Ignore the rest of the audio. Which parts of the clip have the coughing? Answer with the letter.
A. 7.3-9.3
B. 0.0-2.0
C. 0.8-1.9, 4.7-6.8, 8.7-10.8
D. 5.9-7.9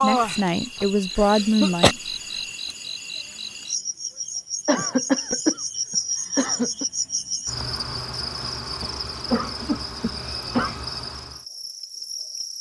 C.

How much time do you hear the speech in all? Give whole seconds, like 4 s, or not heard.
2 s.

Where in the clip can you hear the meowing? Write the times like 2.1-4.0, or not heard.
not heard.